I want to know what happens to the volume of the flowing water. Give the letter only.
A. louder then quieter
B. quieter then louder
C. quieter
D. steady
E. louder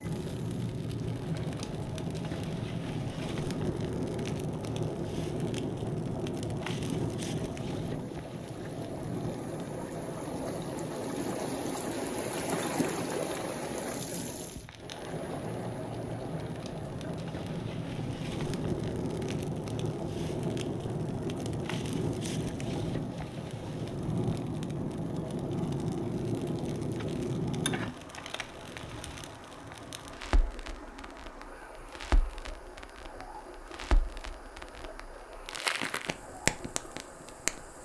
A.